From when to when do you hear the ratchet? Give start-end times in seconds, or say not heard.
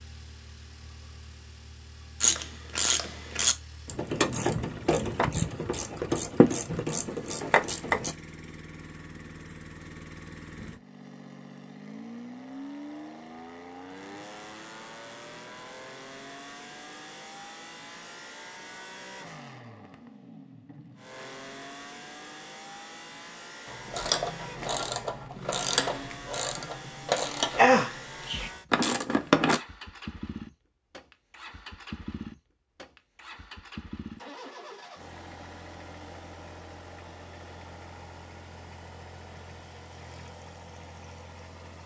2.2-8.2, 23.6-29.6.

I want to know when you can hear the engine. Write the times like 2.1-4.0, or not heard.
0.0-41.8.